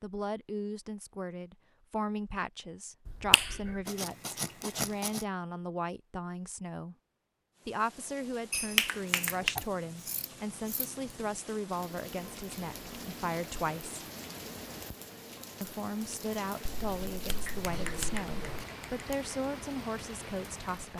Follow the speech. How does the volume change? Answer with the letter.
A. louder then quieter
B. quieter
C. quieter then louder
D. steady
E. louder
D.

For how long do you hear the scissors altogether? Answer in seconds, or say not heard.
6 s.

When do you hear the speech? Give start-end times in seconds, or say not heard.
0.0-7.0, 7.7-14.0, 15.6-20.9.